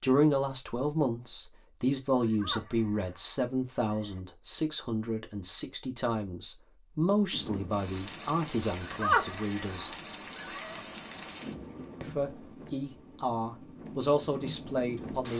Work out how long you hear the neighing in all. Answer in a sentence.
You can hear the neighing for 4 seconds altogether.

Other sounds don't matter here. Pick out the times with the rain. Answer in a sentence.
The rain can be heard from 7.3 to 15.3 s.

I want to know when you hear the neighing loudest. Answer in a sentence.
The loudest moment of the neighing is at 9 seconds.